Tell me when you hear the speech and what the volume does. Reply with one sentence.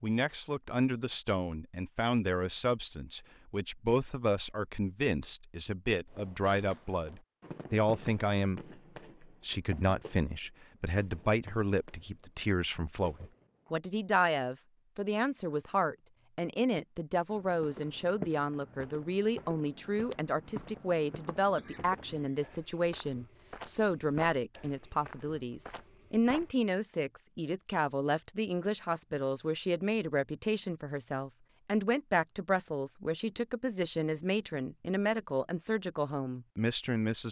You can hear the speech from 0.0 to 37.2 s, at a steady volume.